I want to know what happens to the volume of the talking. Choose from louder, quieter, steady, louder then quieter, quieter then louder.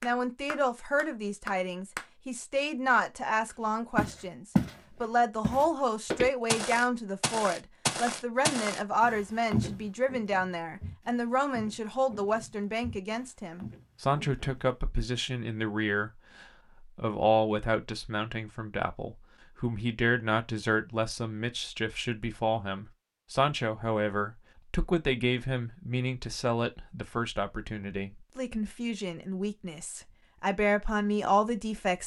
steady.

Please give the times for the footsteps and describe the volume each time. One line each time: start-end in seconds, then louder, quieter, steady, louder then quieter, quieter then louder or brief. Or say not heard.
4.0-4.8 brief
5.4-14.9 quieter.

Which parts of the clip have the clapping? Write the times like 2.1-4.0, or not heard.
0.0-2.0.